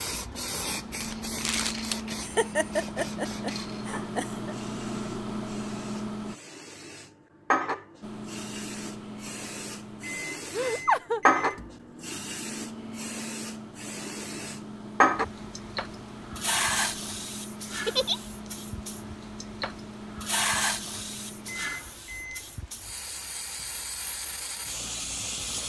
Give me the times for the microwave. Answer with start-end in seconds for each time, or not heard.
0.0-6.3, 8.0-22.4.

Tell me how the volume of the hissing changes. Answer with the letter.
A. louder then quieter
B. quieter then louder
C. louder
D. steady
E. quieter
A.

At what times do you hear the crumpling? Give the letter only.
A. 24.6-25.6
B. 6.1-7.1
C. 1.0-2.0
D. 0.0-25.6
C.